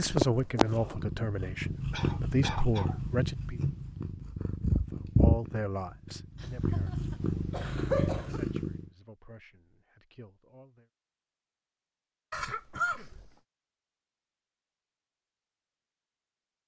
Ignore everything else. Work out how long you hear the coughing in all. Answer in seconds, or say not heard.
4 s.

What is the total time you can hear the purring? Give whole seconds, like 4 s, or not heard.
9 s.